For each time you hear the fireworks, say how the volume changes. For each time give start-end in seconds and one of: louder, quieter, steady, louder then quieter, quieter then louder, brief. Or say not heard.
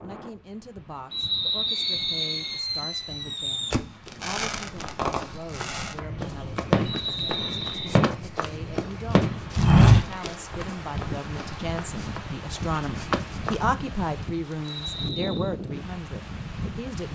1.6-10.3 steady.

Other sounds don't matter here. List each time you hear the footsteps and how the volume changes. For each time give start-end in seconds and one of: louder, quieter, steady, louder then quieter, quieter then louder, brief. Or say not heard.
4.0-13.6 louder then quieter.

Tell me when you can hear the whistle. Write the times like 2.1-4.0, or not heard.
1.1-2.6, 6.8-8.1, 14.6-15.5.